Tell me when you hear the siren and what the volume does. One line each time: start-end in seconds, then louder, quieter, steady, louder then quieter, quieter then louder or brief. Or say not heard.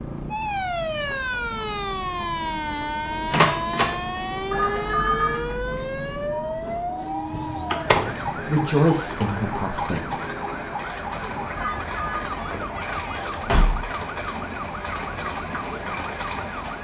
0.0-16.7 quieter.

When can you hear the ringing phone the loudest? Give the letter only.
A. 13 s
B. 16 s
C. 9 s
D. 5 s
D.